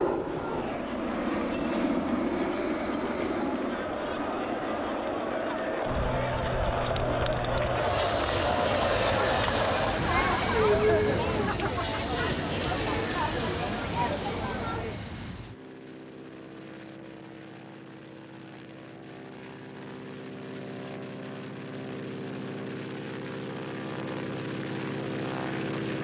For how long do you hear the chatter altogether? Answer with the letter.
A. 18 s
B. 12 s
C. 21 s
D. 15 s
D.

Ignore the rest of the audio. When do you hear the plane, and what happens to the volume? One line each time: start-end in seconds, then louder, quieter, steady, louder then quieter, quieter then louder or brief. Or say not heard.
0.0-25.9 quieter then louder.